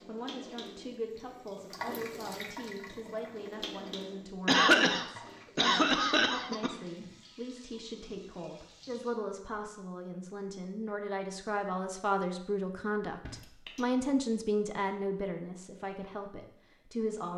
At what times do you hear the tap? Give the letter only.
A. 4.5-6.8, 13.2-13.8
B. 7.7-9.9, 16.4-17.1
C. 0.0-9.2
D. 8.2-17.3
C.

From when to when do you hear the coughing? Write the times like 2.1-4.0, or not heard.
4.5-6.8, 13.2-13.8.